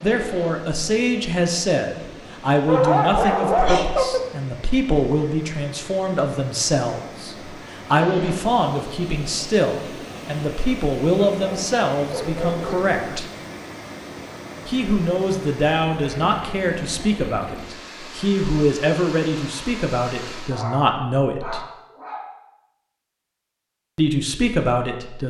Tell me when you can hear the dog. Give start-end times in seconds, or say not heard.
2.6-4.2, 11.2-13.2, 20.5-22.3.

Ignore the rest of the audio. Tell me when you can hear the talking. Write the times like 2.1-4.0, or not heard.
0.0-13.2, 14.7-21.6, 23.9-25.2.